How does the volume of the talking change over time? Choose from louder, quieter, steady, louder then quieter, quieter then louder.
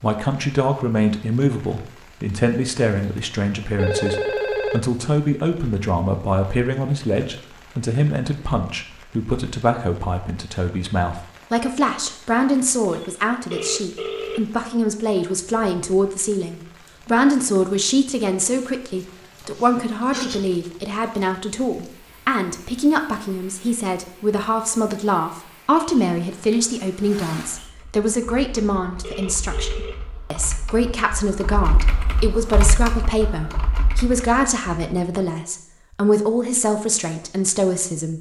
steady.